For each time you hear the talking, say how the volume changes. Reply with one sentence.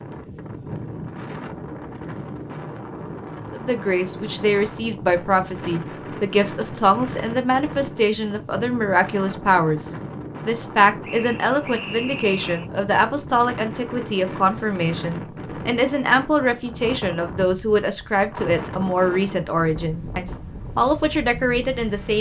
You can hear the talking from 3.5 to 22.1 s, at a steady volume.